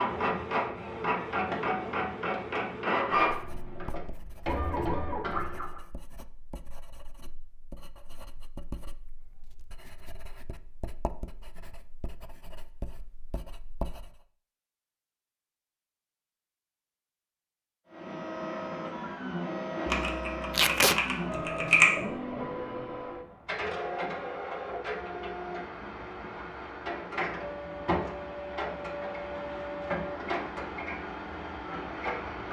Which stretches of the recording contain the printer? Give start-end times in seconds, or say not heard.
0.0-5.8, 17.9-32.4.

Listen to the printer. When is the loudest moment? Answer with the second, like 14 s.
3 s.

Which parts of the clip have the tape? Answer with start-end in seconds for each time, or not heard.
20.5-21.0.